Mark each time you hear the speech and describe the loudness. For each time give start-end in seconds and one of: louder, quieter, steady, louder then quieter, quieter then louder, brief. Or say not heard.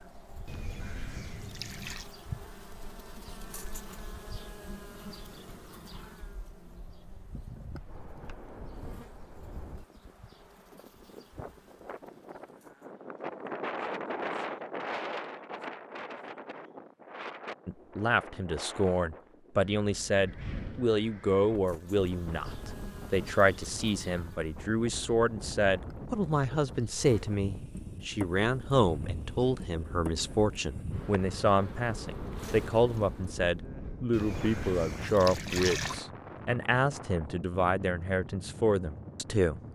17.6-39.6 steady.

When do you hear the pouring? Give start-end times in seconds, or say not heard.
0.5-2.1, 34.1-36.0.